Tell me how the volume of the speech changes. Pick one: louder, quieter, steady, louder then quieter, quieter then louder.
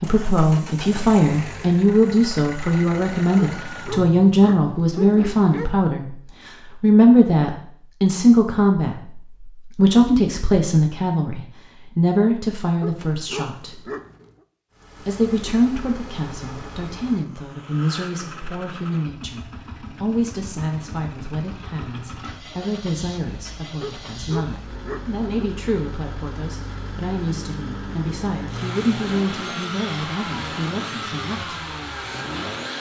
quieter.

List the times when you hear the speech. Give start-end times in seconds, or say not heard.
0.0-13.8, 15.0-31.6.